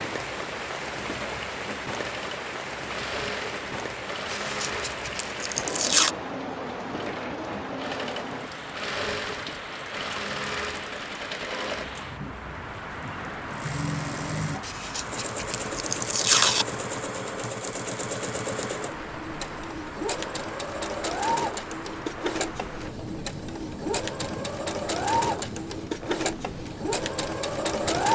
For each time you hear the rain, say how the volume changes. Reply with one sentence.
You can hear the rain from 0.0 to 28.1 s, getting quieter.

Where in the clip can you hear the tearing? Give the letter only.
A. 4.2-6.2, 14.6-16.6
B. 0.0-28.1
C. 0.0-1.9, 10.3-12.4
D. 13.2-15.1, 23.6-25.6
A.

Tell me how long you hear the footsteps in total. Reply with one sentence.
The footsteps can't be heard in this clip.